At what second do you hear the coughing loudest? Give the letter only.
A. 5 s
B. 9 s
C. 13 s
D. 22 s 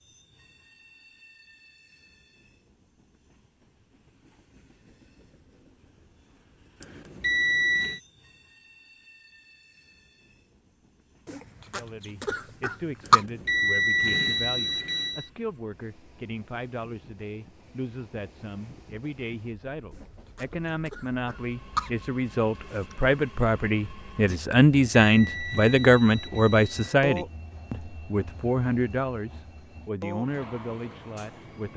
C.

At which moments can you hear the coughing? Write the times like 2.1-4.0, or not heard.
11.2-13.2, 19.9-21.9.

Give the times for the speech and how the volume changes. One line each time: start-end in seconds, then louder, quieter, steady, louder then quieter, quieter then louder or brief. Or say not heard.
11.7-31.7 louder then quieter.